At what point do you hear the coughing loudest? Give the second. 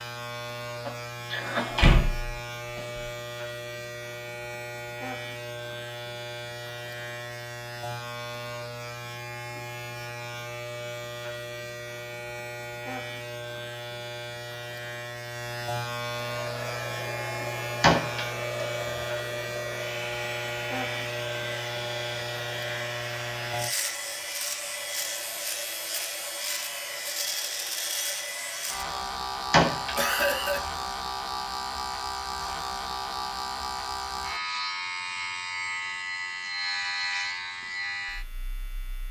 30 s.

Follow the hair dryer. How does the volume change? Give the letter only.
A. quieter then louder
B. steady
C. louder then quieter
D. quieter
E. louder
B.